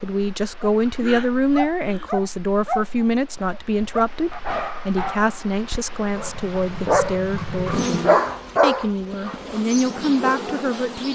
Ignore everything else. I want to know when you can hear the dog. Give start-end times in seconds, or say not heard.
0.6-10.8.